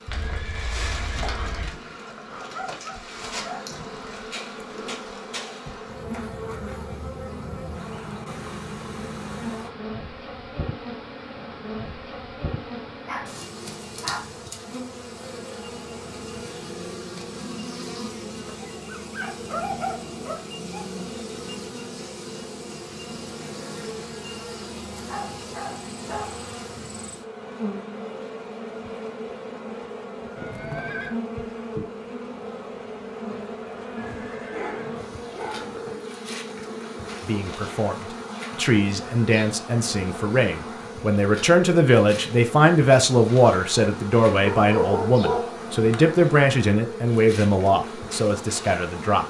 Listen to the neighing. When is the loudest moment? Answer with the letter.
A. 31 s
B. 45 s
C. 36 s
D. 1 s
A.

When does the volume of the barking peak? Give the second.
45 s.